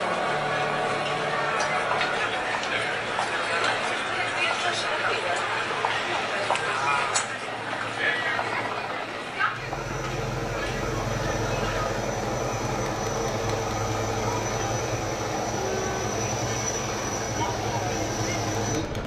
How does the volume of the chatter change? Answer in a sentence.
The loudness of the chatter goes down.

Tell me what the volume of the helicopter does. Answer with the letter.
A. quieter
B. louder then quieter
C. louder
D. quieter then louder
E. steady
C.